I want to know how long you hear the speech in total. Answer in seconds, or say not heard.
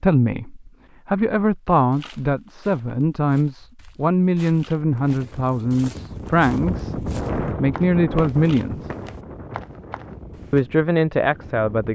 10 s.